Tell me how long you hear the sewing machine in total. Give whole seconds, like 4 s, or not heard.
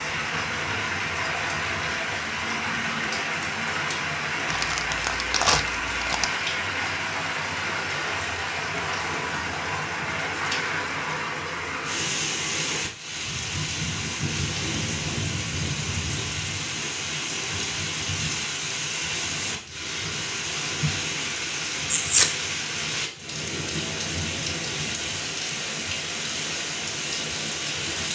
not heard.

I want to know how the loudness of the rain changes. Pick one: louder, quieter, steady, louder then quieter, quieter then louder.
steady.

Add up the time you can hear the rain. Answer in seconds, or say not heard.
28 s.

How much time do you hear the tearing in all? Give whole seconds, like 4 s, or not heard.
2 s.